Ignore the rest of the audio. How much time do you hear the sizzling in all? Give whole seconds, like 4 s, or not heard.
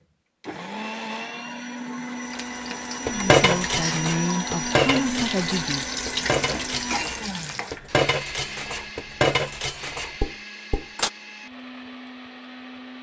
6 s.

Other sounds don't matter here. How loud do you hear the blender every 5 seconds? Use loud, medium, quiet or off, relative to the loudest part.
loud, loud, medium.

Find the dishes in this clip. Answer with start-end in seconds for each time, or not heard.
3.0-11.1.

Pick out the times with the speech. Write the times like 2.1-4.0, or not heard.
3.0-5.8.